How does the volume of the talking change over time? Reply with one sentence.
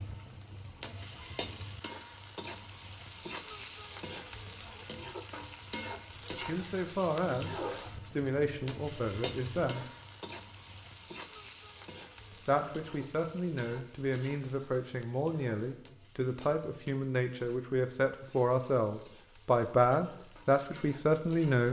The loudness of the talking goes up.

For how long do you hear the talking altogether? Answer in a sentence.
You can hear the talking for 13 seconds altogether.